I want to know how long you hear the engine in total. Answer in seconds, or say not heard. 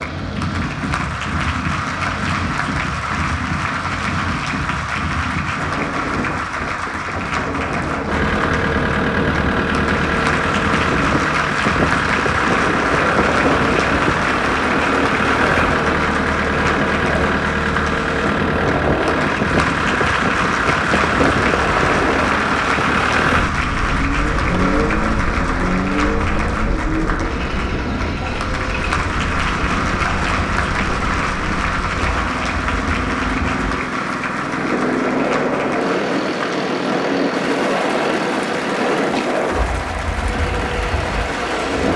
34 s.